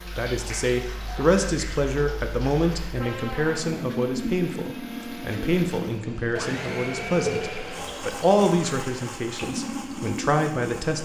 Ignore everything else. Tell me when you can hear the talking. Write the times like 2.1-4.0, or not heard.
0.1-11.0.